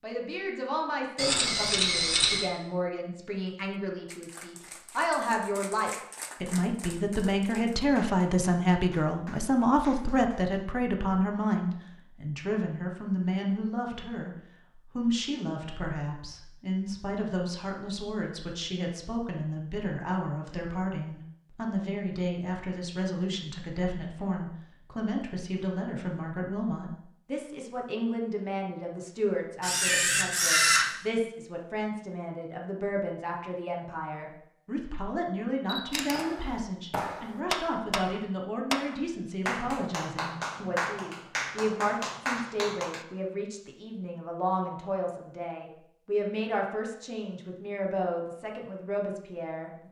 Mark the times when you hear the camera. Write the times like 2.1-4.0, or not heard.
1.1-2.5, 29.6-30.9, 35.6-36.2.